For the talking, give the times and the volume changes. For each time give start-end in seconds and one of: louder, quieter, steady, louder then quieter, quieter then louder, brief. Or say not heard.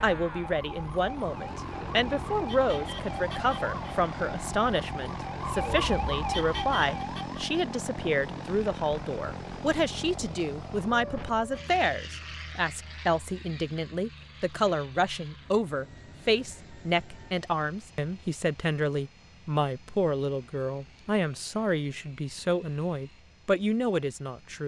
0.0-24.6 steady.